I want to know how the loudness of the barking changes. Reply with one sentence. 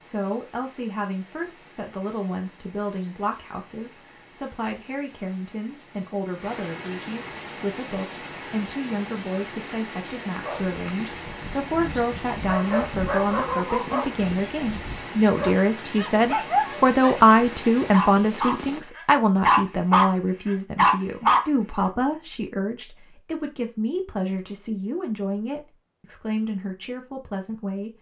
The loudness of the barking goes up.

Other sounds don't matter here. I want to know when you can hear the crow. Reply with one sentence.
The crow can't be heard in this clip.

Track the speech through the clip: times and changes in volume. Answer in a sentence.
The speech can be heard from 0.0 to 27.9 s, getting louder then quieter.